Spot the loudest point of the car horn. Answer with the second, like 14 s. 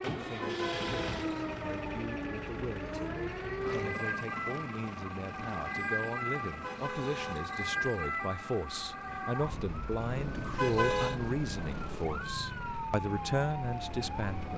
11 s.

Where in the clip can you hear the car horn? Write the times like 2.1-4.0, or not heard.
0.2-1.6, 6.5-7.9, 10.3-11.2.